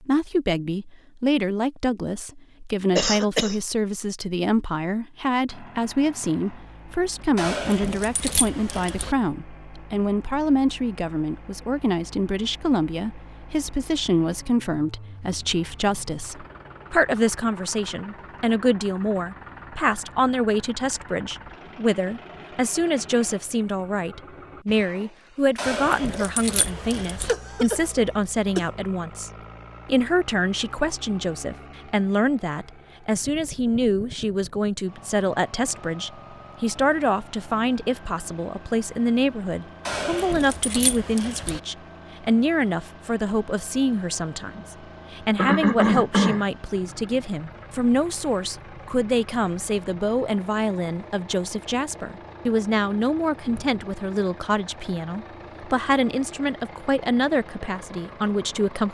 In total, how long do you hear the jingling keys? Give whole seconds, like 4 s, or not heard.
5 s.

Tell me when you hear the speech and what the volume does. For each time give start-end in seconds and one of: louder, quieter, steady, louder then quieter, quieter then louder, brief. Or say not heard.
0.0-58.9 steady.